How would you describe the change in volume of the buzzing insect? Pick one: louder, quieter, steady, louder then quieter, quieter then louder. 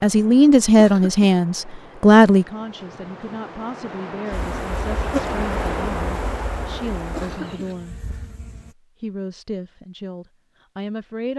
quieter.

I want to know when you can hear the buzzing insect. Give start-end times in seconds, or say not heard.
4.3-8.8.